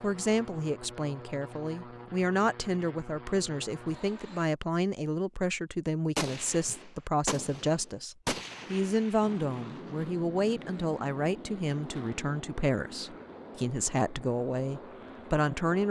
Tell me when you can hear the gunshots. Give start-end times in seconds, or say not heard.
6.2-9.7.